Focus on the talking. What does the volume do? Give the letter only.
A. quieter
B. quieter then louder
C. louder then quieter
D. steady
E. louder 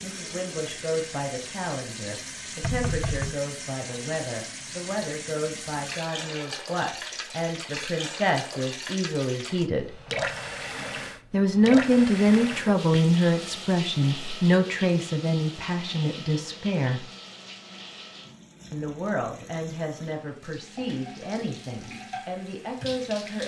C.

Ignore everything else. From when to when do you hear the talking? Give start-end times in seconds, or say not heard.
0.0-9.9, 11.3-17.1, 18.7-23.4.